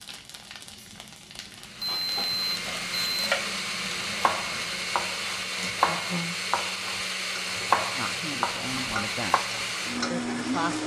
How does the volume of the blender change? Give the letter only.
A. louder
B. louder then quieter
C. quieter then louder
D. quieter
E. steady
E.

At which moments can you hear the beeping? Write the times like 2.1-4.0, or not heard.
1.8-3.3.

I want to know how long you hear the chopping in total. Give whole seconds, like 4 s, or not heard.
7 s.